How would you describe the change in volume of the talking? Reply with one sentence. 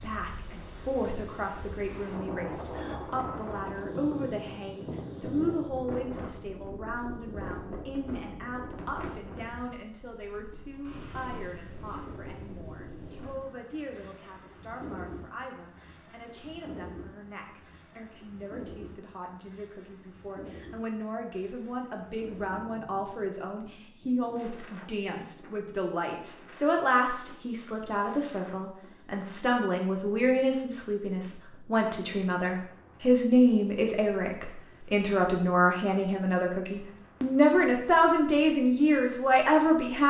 The loudness of the talking goes down, then up.